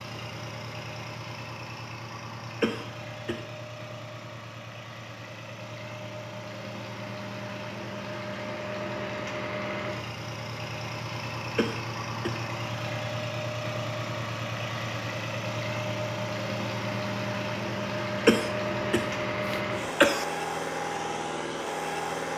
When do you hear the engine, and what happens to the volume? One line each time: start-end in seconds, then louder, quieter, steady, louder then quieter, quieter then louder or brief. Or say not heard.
0.0-22.3 louder.